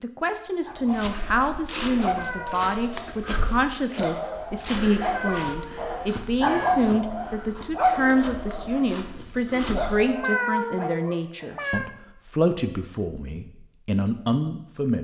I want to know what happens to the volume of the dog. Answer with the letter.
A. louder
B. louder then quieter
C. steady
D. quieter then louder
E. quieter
B.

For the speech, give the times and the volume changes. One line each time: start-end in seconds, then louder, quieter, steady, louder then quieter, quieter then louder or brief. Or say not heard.
0.0-14.9 steady.